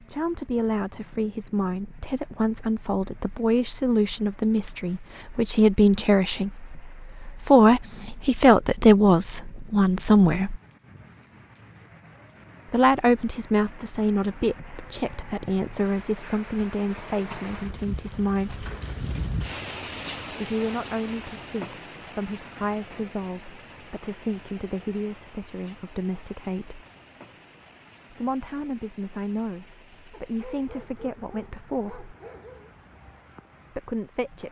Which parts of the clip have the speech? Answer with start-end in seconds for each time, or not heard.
0.0-10.6, 12.7-18.6, 20.3-26.9, 28.1-32.1, 33.8-34.4.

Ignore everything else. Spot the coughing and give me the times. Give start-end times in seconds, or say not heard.
not heard.